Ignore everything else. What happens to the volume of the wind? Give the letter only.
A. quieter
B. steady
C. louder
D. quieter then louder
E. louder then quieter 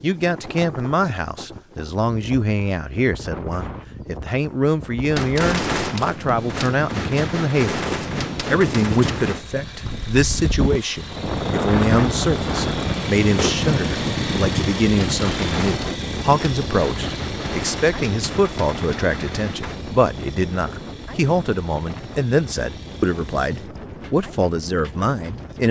E.